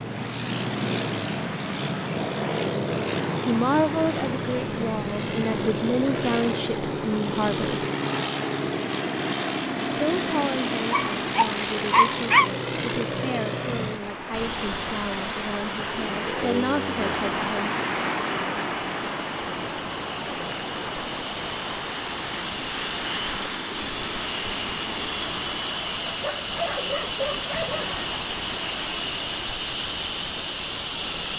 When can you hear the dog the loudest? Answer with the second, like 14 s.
12 s.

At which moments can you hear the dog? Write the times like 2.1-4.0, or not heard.
10.9-12.5, 26.1-28.0.